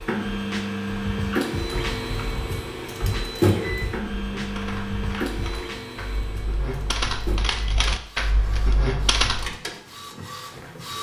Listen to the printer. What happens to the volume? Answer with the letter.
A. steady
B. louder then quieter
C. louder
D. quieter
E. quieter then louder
D.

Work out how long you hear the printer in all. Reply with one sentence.
You can hear the printer for 11 seconds altogether.